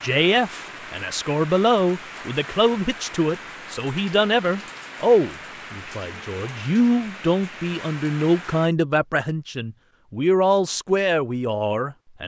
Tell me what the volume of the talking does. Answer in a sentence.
The loudness of the talking stays about the same.